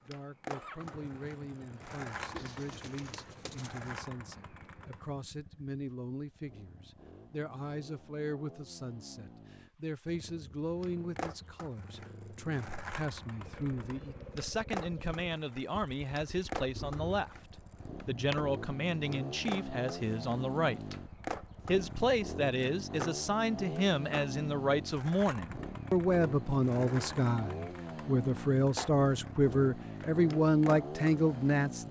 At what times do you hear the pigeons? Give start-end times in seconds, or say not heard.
2.3-3.9.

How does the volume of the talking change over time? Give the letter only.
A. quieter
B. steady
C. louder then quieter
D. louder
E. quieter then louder
D.